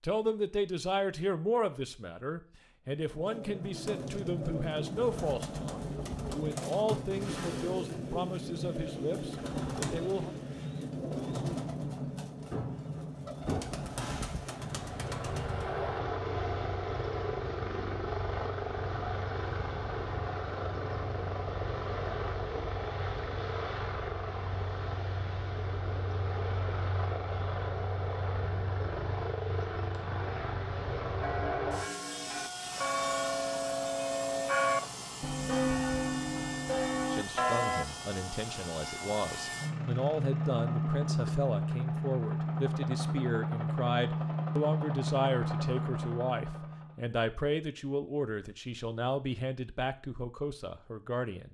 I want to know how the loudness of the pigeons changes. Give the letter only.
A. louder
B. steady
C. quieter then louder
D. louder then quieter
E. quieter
B.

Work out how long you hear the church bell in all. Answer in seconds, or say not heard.
7 s.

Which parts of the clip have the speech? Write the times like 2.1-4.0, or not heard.
0.0-10.3, 37.1-51.4.